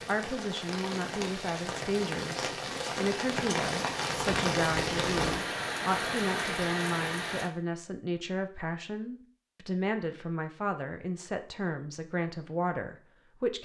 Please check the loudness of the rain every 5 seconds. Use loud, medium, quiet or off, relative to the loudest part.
loud, loud, off.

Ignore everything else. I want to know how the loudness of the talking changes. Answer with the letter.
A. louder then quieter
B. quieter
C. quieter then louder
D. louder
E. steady
E.